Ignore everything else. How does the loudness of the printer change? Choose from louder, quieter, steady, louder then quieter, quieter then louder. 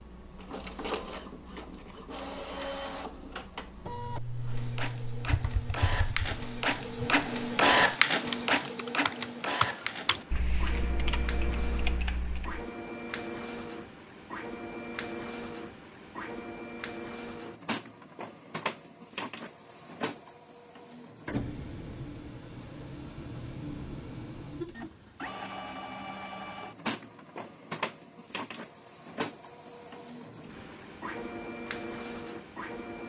louder then quieter.